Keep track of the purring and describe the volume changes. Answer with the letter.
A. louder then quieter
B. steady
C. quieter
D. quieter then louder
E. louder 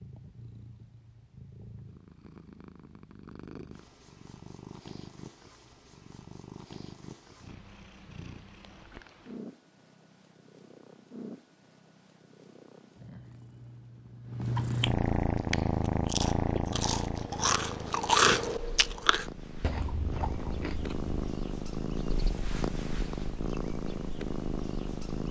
E.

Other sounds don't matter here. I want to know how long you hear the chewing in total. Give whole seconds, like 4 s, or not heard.
6 s.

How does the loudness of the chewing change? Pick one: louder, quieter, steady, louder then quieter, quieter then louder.
louder then quieter.